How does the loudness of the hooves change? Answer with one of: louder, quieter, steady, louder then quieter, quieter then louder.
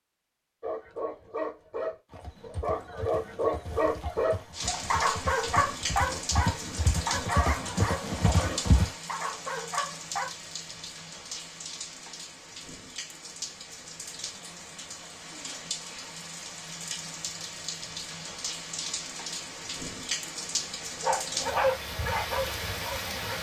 louder.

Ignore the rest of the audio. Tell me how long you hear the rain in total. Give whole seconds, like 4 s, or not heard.
19 s.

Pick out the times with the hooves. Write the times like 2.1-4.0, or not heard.
2.1-8.9.